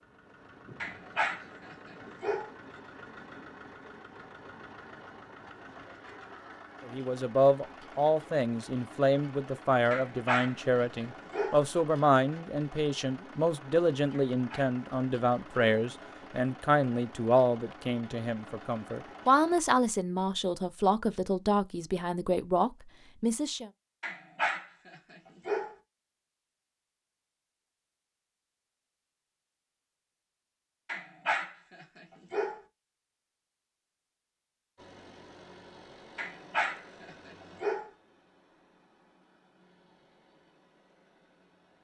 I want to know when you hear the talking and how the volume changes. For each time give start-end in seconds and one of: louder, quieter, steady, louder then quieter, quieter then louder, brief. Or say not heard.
6.8-23.7 steady.